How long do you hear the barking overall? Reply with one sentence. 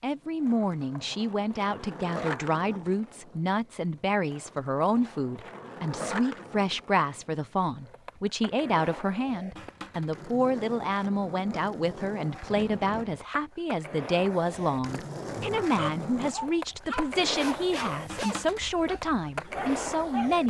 You can hear the barking for 5 seconds altogether.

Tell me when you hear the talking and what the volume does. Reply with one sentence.
You can hear the talking from 0.0 to 20.4 s, at a steady volume.